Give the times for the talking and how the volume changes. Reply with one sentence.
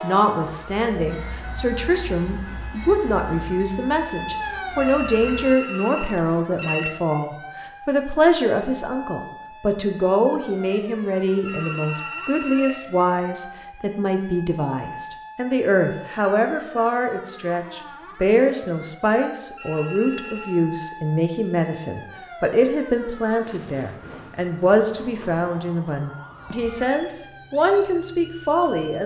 You can hear the talking from 0.0 to 29.0 s, at a steady volume.